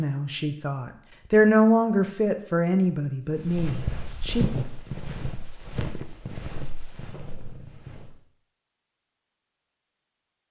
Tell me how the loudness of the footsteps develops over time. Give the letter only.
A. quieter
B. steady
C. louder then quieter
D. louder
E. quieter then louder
A.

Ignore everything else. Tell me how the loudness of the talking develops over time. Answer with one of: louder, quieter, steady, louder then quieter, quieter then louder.
louder then quieter.